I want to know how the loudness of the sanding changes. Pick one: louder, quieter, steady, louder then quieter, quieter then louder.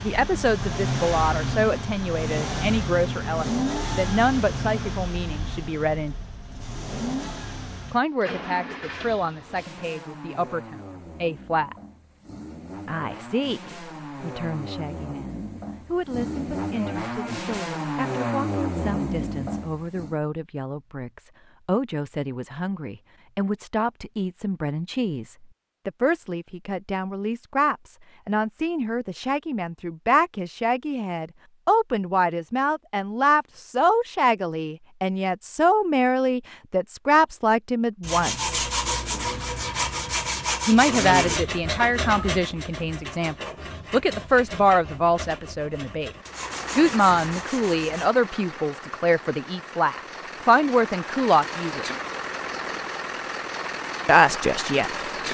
quieter.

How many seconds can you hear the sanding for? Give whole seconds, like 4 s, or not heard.
10 s.